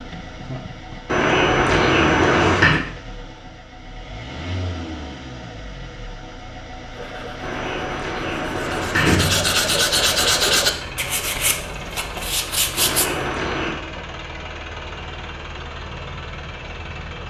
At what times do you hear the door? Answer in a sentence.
You can hear the door from 1.1 to 2.8 s, from 7.4 to 9.8 s and from 12.8 to 13.8 s.